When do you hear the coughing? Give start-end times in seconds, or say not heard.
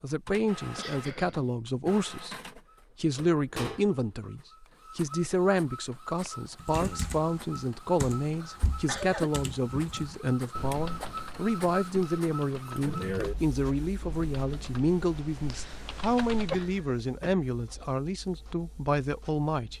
0.2-1.5, 8.4-9.3, 16.5-17.9.